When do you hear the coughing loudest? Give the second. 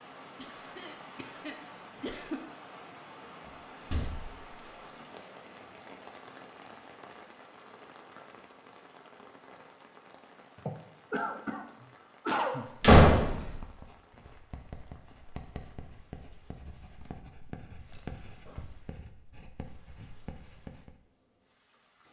12 s.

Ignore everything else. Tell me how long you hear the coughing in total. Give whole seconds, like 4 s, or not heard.
5 s.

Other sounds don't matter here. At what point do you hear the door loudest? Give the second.
13 s.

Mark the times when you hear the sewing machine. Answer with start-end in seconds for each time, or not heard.
not heard.